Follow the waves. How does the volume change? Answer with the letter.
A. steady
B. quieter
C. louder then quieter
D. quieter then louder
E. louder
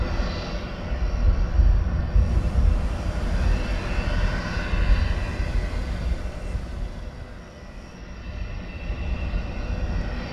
D.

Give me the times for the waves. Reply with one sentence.
You can hear the waves from 2.1 to 10.2 s.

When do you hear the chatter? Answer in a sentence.
You can't hear the chatter here.